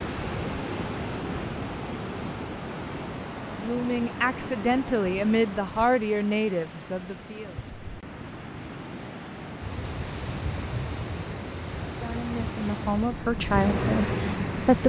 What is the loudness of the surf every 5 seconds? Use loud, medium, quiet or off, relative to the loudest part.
loud, medium, loud.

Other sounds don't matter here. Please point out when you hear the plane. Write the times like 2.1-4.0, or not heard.
13.2-14.8.